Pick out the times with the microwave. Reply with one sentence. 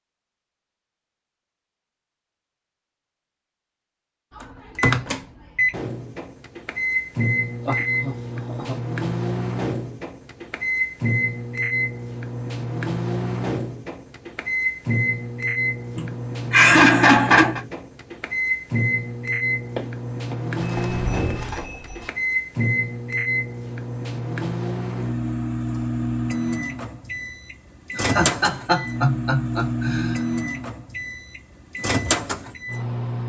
The microwave can be heard from 4.3 to 33.2 s.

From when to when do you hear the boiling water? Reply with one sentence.
The boiling water can't be heard in this clip.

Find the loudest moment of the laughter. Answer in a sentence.
The volume of the laughter peaks at 17 seconds.